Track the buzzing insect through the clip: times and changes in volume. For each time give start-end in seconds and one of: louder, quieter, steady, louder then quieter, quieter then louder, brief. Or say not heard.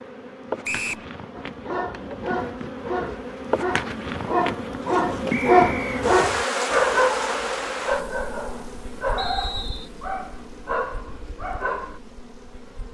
0.0-12.8 louder then quieter.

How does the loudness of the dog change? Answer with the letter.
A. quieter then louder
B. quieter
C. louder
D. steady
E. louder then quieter
E.